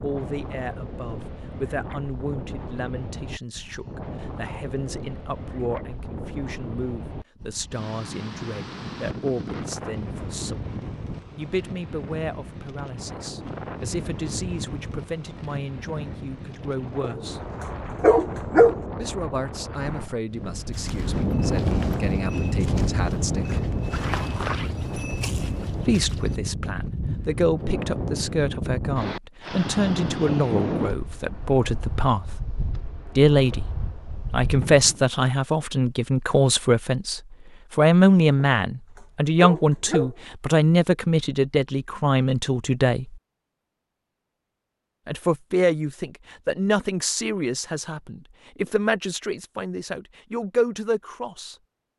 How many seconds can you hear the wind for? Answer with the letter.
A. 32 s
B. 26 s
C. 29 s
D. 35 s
D.